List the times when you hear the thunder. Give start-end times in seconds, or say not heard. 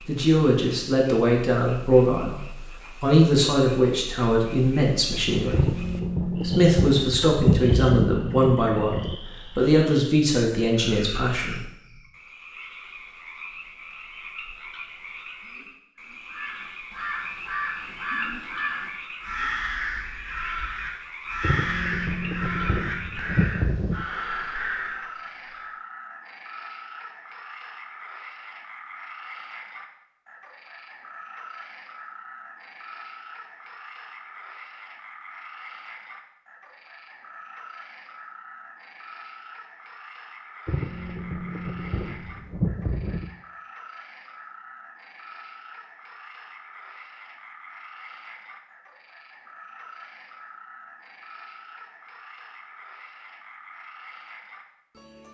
5.5-9.2, 21.4-24.1, 40.6-43.4.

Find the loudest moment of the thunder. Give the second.
8 s.